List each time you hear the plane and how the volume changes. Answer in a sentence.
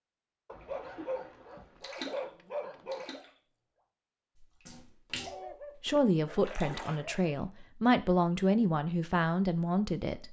You can't hear the plane here.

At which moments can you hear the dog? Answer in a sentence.
The dog can be heard from 0.5 to 3.1 s and from 5.2 to 7.3 s.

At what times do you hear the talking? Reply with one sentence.
You can hear the talking from 5.8 to 10.2 s.